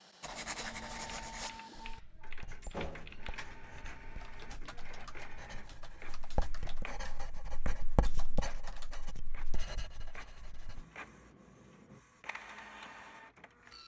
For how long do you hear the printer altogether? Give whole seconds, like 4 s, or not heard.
14 s.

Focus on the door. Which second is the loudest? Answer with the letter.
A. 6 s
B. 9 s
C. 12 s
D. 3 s
D.